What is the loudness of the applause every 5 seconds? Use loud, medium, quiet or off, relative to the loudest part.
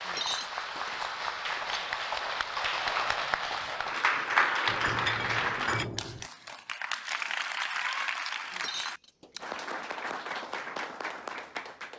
loud, loud, medium.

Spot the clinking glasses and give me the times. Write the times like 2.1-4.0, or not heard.
0.1-1.9, 4.7-6.2, 8.5-9.4.